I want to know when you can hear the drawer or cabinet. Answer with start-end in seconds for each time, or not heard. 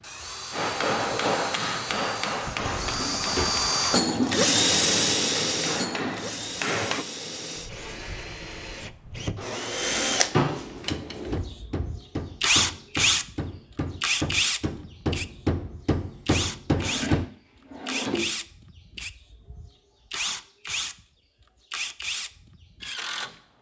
2.8-3.6, 9.3-10.8, 16.7-18.3.